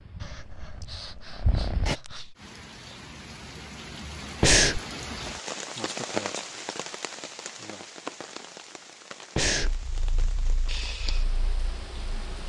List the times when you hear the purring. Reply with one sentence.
You can hear the purring from 0.0 to 1.9 s and from 9.6 to 12.3 s.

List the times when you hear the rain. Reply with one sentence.
The rain can be heard from 2.4 to 12.4 s.